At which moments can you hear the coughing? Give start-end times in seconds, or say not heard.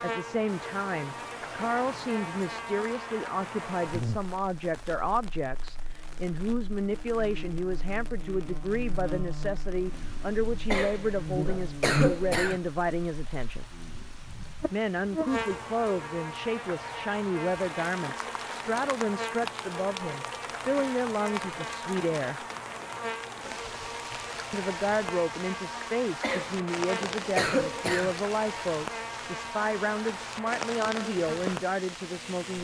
10.7-12.6, 26.2-28.1.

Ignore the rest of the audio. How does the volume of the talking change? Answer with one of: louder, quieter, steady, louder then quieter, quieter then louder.
steady.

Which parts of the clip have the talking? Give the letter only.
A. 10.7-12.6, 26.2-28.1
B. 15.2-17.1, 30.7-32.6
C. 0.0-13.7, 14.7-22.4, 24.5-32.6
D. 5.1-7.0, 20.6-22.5
C.